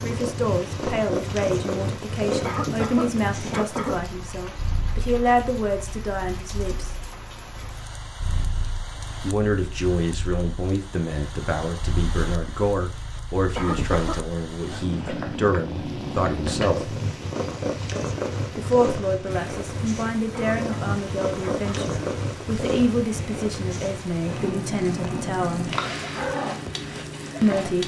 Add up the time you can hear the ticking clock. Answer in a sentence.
The ticking clock can't be heard in this clip.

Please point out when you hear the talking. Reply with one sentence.
The talking can be heard from 0.0 to 7.0 s, from 9.2 to 16.9 s, from 18.6 to 25.7 s and from 27.4 to 27.8 s.